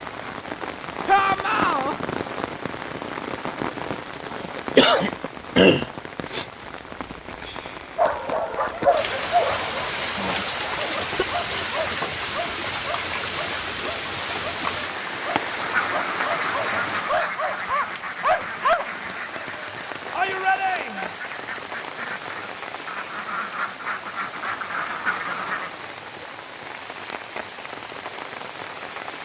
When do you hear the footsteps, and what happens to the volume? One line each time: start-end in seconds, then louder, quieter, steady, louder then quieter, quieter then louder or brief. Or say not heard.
not heard.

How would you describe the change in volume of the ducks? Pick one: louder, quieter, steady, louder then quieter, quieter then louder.
quieter then louder.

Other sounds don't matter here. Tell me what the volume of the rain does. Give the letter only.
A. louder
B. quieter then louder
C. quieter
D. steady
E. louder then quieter
C.